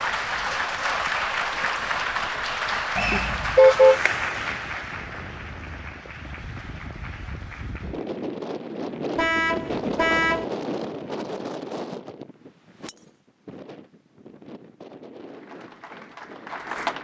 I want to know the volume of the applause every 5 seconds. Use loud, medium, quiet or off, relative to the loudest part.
loud, quiet, off, medium.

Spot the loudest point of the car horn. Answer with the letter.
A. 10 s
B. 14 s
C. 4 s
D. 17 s
C.